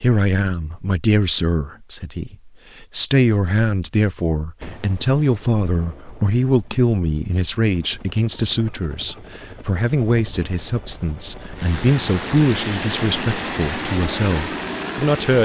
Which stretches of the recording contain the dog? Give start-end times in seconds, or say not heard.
not heard.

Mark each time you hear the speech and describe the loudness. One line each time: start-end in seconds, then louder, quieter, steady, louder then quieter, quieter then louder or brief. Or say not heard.
0.0-15.4 steady.